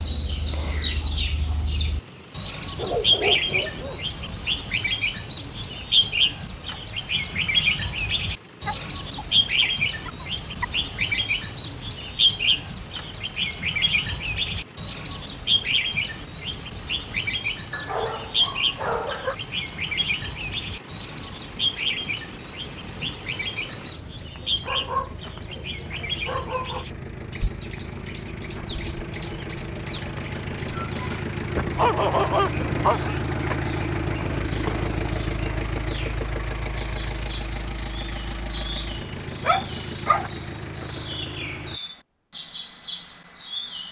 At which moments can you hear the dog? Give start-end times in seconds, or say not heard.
2.8-4.3, 8.7-10.7, 17.7-19.4, 24.4-26.9, 31.6-33.1, 39.4-40.2.